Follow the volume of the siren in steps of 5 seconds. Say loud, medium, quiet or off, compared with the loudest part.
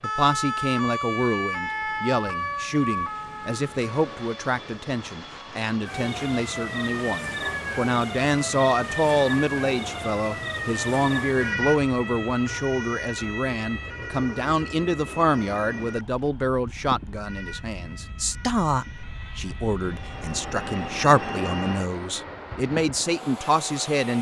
loud, loud, loud, quiet, medium.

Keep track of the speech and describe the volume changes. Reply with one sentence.
The loudness of the speech stays about the same.